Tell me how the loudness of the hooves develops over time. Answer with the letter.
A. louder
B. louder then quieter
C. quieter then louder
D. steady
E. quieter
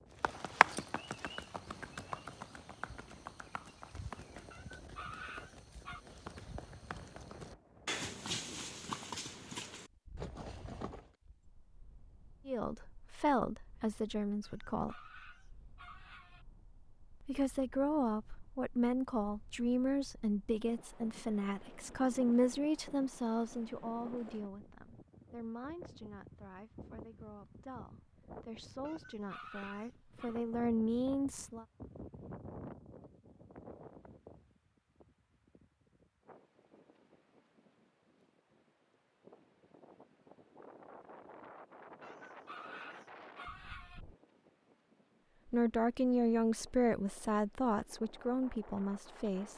C.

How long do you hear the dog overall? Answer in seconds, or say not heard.
7 s.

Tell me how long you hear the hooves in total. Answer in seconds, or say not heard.
11 s.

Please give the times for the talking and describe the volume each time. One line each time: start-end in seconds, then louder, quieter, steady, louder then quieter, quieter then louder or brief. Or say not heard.
12.4-15.0 brief
17.2-31.6 quieter then louder
45.5-49.5 quieter.